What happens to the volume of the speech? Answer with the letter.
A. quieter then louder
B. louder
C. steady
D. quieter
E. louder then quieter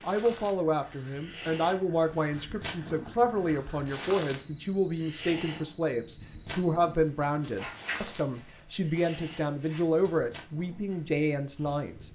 C.